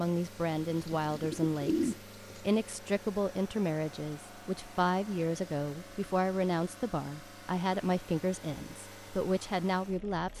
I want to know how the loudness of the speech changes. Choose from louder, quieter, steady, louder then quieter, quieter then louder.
steady.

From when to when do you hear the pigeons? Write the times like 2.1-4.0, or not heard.
0.9-2.4.